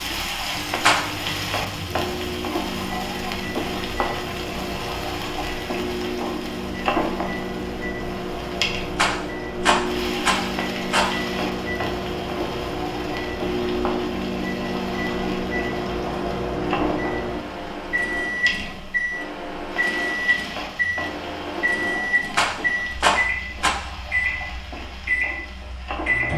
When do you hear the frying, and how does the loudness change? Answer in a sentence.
The frying can be heard from 0.0 to 26.3 s, getting quieter.